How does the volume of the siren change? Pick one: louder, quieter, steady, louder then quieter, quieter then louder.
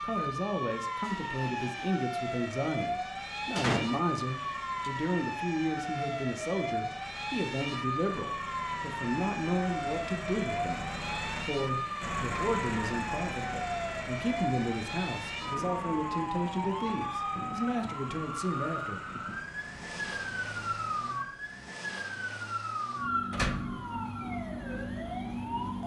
steady.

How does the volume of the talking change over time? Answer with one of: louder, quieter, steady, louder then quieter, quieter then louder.
steady.